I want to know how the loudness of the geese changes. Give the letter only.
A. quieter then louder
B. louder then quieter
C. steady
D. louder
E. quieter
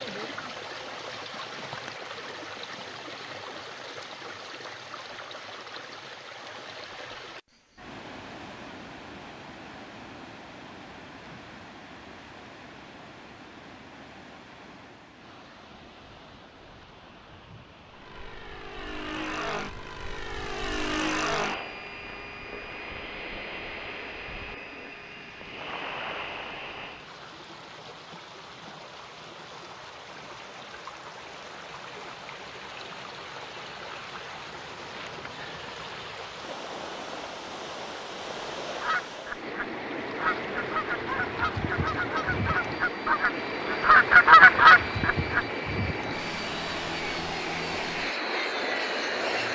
D.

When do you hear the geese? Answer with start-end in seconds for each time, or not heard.
38.7-45.5.